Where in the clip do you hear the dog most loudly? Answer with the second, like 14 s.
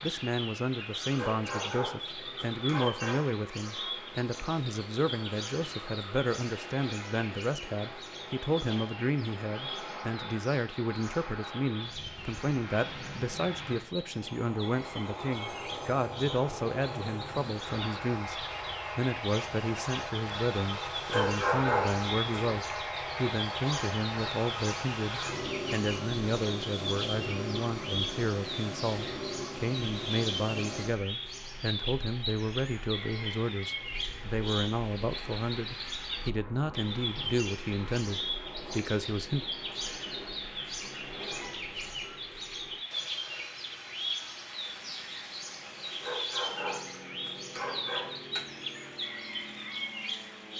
22 s.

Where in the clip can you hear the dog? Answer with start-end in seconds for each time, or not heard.
1.1-3.4, 21.1-22.6, 46.0-48.6.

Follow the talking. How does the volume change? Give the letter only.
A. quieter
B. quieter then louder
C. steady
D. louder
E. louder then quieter
C.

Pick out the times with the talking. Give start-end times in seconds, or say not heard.
0.0-39.5.